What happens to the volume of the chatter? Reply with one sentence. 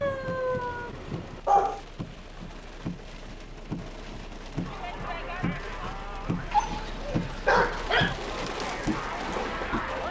The volume of the chatter goes down, then up.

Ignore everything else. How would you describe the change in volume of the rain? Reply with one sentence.
The loudness of the rain goes up.